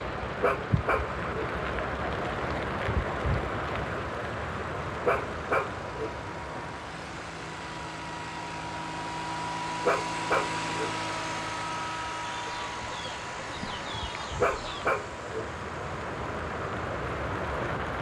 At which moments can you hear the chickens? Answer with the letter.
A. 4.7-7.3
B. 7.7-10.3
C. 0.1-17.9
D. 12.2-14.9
D.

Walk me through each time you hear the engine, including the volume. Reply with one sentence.
You can hear the engine from 0.1 to 17.9 s, getting louder then quieter.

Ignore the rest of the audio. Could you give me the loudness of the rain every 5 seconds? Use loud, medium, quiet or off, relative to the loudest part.
loud, medium, medium, loud.